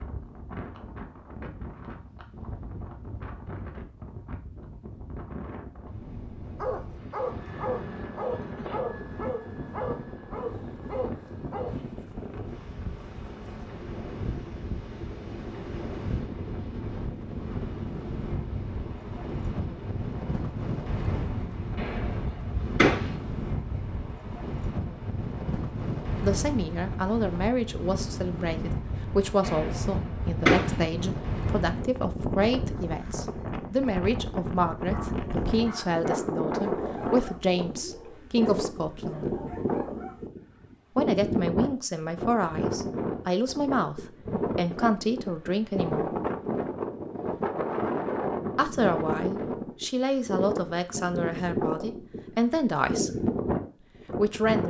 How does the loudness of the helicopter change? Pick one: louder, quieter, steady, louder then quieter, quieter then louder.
quieter then louder.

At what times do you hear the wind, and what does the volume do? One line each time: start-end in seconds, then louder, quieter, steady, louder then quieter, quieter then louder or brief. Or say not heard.
0.0-54.6 louder.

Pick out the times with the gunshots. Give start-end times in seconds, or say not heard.
21.8-23.1, 29.4-30.8.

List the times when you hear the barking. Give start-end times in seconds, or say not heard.
6.5-11.8, 34.9-40.3.